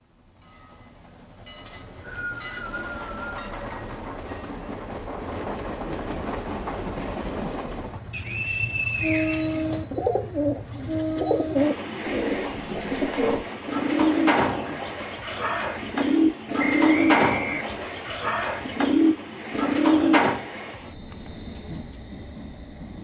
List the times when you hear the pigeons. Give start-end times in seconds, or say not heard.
9.4-20.4.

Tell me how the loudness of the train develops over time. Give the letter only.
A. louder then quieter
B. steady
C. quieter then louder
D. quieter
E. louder
A.